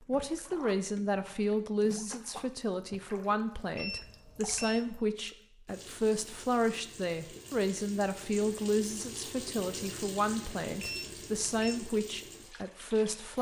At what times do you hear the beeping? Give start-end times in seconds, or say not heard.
3.8-4.8, 10.8-11.8.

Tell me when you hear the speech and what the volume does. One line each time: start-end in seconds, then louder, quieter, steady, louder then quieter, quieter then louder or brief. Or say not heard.
0.1-13.3 steady.